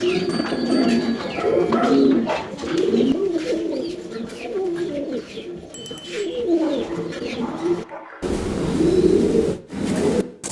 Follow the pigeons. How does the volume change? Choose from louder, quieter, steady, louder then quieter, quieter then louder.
quieter then louder.